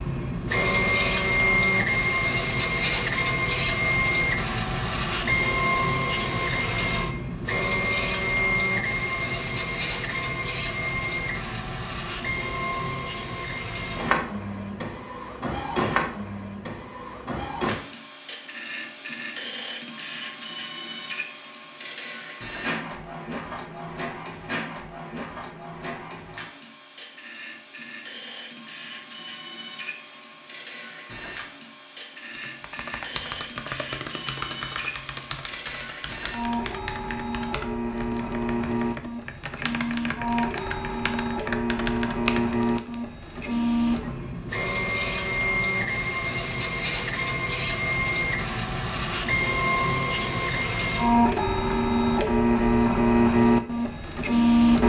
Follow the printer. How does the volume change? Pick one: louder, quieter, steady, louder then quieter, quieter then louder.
quieter then louder.